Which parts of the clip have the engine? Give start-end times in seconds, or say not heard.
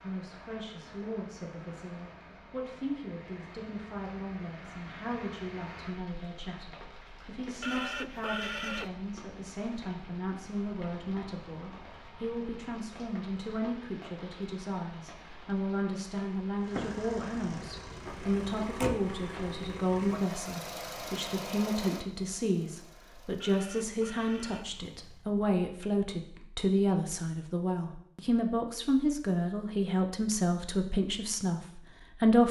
16.6-25.4.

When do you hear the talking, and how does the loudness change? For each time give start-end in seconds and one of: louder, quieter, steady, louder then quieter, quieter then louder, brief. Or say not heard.
0.0-32.4 louder.